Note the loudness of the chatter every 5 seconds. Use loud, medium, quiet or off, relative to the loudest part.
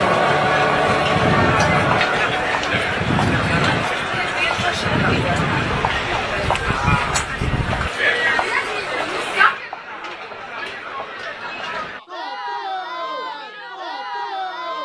loud, loud, medium.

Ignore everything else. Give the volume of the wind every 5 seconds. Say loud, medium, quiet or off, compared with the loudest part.
loud, loud, off.